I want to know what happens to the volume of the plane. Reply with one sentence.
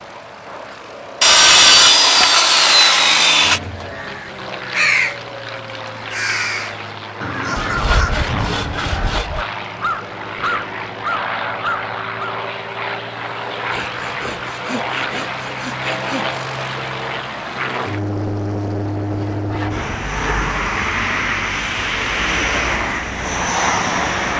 The loudness of the plane goes up.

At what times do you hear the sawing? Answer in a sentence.
The sawing can be heard from 1.2 to 3.6 s, from 7.5 to 9.4 s, from 13.7 to 16.4 s and from 19.1 to 20.5 s.